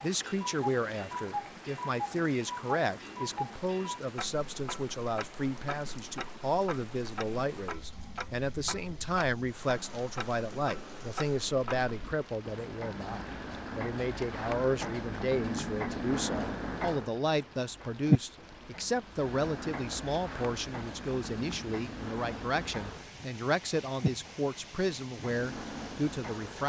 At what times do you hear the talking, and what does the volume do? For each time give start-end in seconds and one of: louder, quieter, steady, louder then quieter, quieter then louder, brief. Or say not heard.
0.0-26.6 steady.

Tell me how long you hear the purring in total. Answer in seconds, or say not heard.
not heard.